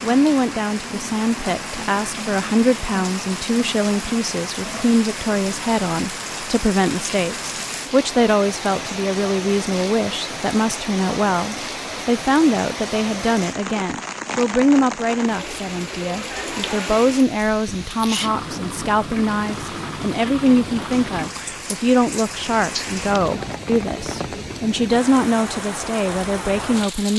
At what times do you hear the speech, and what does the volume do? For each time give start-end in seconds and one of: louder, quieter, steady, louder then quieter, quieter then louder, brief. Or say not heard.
0.0-27.1 steady.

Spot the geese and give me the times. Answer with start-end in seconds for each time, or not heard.
not heard.